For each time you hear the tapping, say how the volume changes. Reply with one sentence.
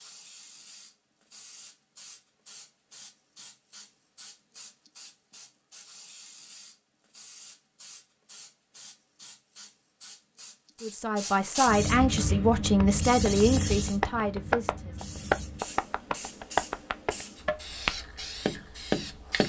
The tapping can be heard from 12.2 to 19.4 s, getting louder.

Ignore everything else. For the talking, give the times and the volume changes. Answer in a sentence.
You can hear the talking from 10.8 to 14.9 s, getting quieter.